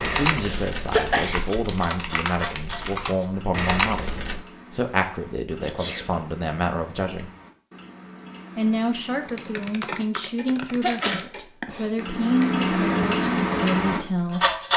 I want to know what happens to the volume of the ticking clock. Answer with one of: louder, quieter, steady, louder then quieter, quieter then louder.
quieter then louder.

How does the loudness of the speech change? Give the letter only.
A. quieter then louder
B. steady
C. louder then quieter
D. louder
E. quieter
B.